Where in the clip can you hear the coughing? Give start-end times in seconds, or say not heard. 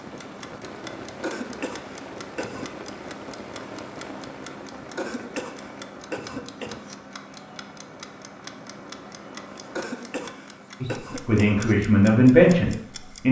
1.2-2.7, 5.0-7.0, 9.8-11.7.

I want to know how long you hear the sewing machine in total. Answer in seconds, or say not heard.
not heard.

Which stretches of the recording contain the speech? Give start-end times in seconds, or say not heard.
10.8-13.2.